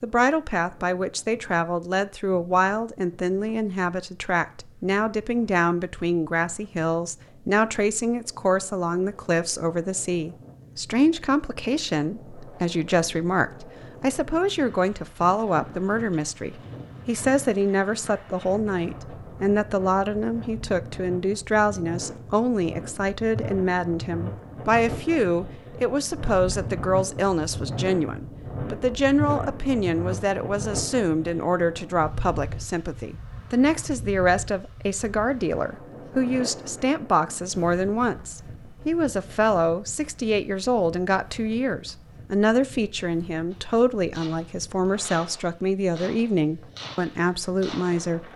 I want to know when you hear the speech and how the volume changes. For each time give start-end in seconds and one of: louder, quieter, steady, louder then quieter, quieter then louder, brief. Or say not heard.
0.0-48.3 steady.